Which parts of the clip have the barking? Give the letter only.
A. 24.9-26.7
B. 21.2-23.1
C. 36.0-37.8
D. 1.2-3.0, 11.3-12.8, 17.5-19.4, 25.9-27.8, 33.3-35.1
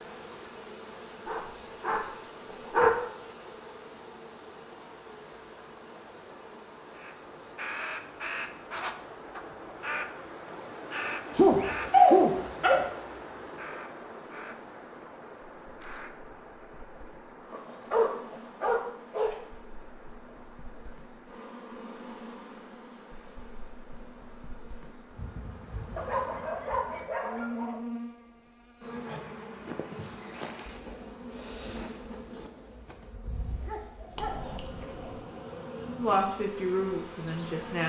D.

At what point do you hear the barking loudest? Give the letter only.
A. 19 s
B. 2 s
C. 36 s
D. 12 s
D.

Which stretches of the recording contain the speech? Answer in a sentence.
You can hear the speech from 36.0 to 37.8 s.